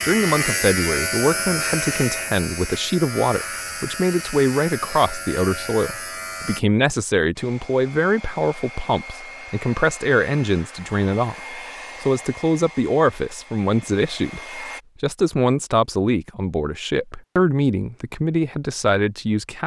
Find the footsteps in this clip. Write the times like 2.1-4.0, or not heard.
not heard.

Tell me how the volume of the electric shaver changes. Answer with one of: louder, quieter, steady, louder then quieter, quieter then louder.
quieter.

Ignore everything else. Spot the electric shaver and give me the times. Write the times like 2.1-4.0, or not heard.
0.0-6.6.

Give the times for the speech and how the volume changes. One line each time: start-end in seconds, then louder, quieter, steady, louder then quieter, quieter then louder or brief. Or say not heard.
0.0-19.6 steady.